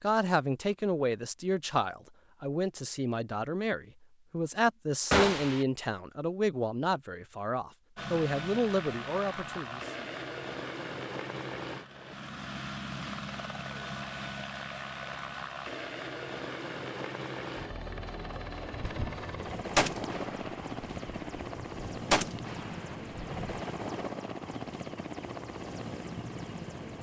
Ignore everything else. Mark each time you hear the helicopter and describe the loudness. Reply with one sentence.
You can hear the helicopter from 8.0 to 26.9 s, at a steady volume.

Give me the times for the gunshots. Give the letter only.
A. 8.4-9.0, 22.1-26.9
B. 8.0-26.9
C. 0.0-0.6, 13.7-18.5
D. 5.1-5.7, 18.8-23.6
D.